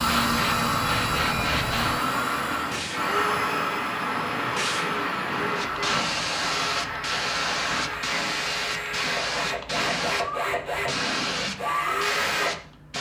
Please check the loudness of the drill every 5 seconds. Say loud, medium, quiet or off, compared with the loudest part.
loud, medium, loud.